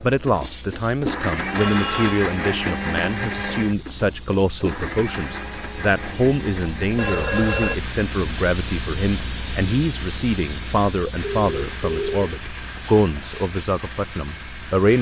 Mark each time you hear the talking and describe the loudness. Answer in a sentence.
The talking can be heard from 0.0 to 14.9 s, at a steady volume.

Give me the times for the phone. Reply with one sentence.
You can hear the phone from 1.6 to 2.2 s, from 7.0 to 7.8 s and from 11.2 to 12.2 s.